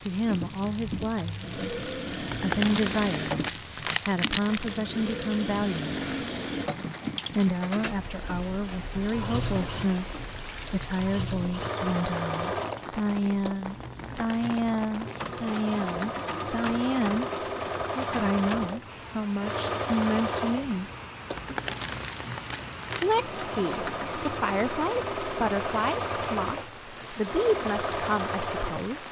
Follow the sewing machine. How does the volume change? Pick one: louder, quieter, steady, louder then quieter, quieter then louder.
steady.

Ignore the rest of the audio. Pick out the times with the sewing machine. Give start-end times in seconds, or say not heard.
0.0-29.0.